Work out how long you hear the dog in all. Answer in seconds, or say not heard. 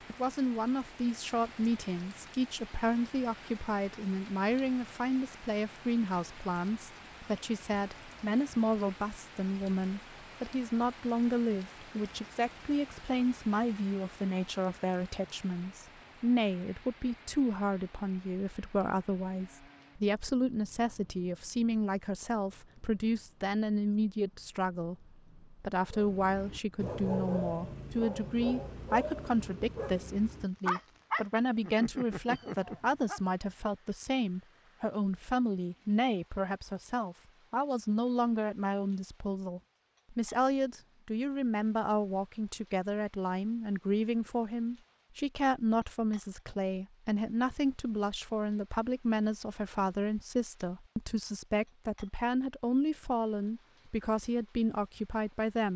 7 s.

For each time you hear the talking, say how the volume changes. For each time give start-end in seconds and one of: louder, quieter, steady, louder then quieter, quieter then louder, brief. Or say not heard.
0.1-55.7 steady.